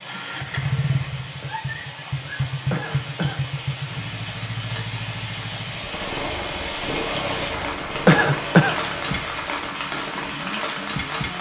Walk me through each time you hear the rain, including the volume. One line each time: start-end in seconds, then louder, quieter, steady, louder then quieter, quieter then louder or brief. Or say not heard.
0.0-11.3 louder.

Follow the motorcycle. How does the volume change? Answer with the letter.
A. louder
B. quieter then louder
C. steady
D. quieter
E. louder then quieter
D.